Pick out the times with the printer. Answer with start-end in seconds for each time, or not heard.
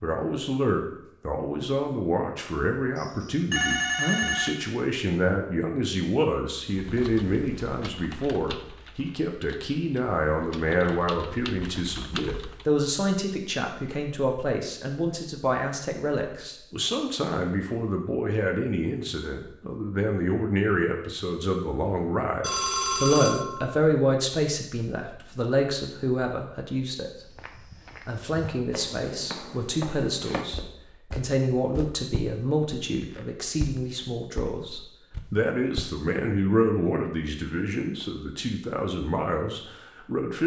not heard.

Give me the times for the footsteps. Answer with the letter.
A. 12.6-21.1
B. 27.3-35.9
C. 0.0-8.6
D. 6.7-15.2
B.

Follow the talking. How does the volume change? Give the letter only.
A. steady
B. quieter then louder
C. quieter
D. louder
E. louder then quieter
A.